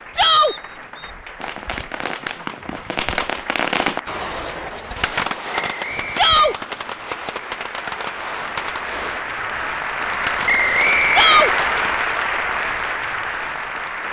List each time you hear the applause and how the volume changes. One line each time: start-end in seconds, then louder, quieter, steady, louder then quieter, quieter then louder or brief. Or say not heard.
0.0-14.0 louder.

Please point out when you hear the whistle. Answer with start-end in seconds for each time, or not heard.
0.2-1.1, 5.5-6.5, 10.4-11.6.